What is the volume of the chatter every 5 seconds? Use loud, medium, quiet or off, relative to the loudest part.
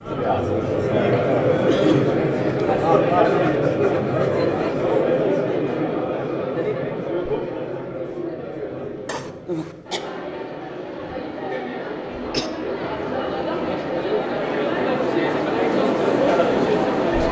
loud, medium, medium, loud.